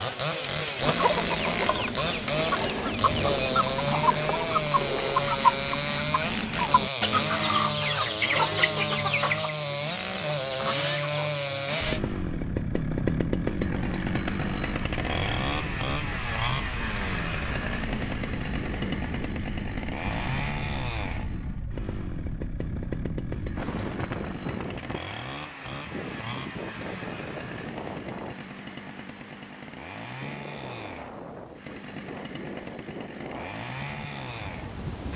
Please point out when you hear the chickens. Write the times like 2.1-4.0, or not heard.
0.8-11.8.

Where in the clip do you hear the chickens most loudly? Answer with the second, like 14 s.
5 s.